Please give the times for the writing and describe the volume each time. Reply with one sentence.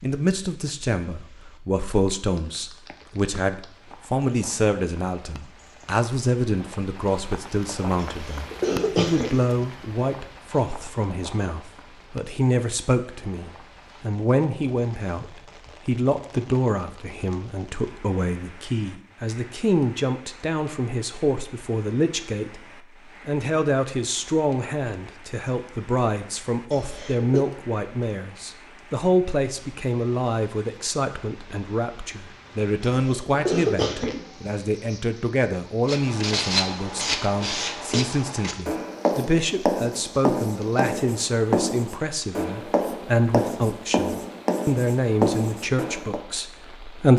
The writing can be heard from 35.9 to 46.2 s, at a steady volume.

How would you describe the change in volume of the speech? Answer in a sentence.
The loudness of the speech stays about the same.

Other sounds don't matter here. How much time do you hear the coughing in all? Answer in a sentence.
You can hear the coughing for 4 seconds altogether.